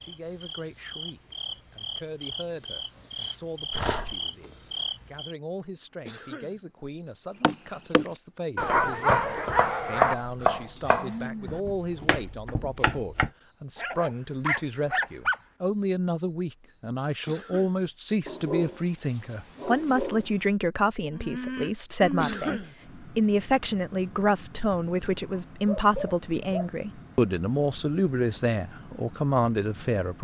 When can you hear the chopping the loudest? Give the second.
10 s.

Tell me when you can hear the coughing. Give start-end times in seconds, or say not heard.
6.0-6.6, 17.2-17.8, 22.2-22.8.